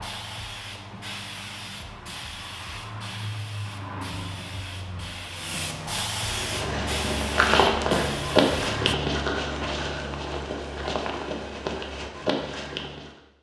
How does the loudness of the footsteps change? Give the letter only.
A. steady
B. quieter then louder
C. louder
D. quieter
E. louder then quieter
D.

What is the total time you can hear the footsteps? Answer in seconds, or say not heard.
7 s.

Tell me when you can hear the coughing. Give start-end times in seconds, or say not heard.
not heard.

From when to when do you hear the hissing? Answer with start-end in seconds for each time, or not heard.
0.0-8.9.